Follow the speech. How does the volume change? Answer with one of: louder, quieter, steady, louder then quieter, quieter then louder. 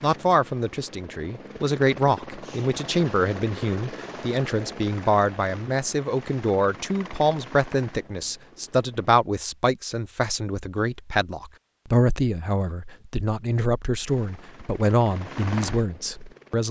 steady.